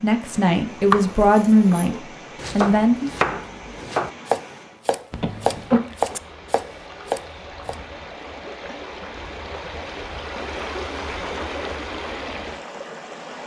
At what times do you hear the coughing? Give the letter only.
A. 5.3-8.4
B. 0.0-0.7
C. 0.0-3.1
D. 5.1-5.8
D.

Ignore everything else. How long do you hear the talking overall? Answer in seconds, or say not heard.
3 s.